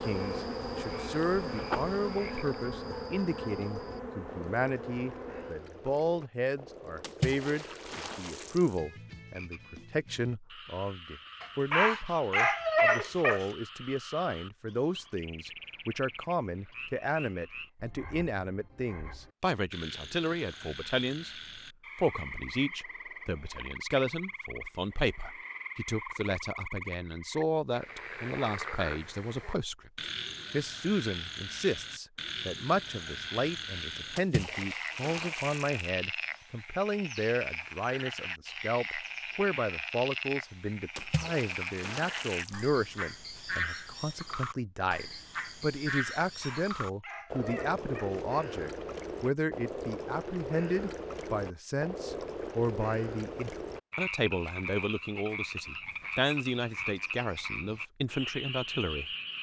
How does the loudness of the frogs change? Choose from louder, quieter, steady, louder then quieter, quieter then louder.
louder.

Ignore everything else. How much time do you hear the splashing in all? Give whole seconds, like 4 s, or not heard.
5 s.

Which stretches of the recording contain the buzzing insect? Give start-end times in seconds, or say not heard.
0.0-5.6.